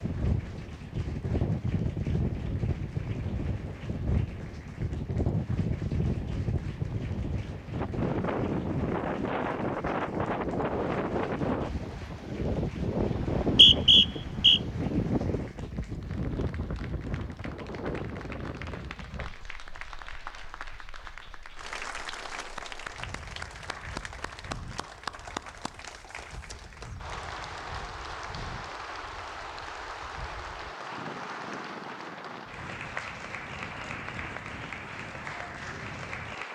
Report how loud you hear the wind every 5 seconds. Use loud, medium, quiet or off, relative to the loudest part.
loud, loud, loud, medium, quiet, quiet, quiet, quiet.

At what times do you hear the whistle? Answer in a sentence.
The whistle can be heard from 13.2 to 14.6 s.